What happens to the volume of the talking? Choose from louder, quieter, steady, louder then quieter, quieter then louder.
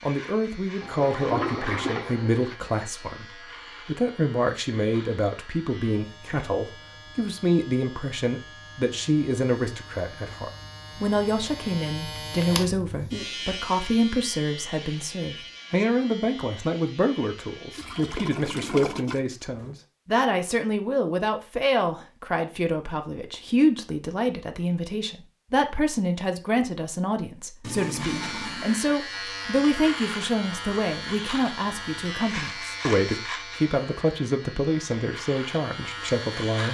steady.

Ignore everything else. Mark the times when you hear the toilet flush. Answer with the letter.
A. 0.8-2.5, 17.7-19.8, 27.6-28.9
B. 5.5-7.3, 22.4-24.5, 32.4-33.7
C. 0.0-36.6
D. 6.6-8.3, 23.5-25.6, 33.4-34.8
A.